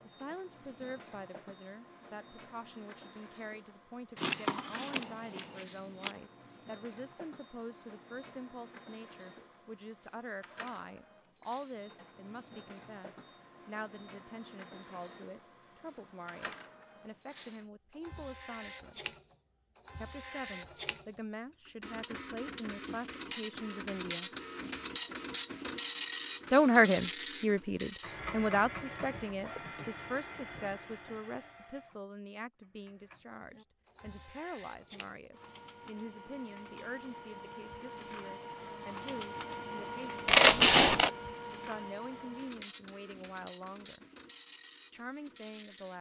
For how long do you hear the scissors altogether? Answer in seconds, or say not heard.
3 s.